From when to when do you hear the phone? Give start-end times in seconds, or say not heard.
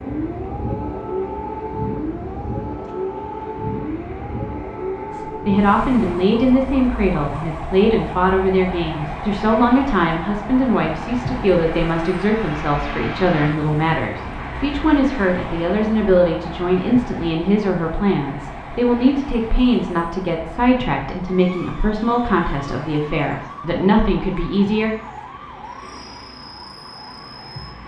not heard.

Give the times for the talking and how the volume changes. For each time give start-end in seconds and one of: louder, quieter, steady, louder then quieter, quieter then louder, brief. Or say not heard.
5.1-24.9 steady.